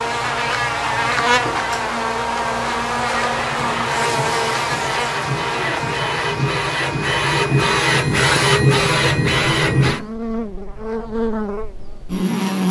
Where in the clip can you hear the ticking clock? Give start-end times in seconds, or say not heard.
not heard.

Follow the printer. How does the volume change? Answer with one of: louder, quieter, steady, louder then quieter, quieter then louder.
louder.